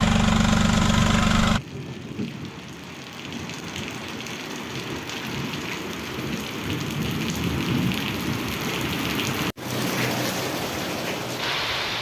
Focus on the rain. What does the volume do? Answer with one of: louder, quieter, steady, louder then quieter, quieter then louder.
louder.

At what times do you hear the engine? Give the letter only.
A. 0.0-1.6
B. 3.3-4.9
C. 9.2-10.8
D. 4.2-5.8
A.